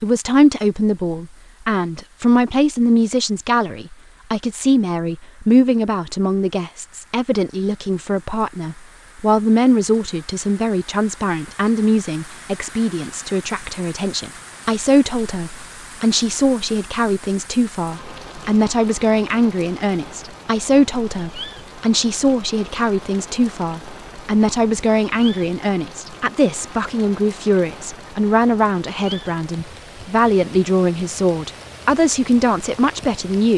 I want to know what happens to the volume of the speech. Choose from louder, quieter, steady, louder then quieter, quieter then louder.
steady.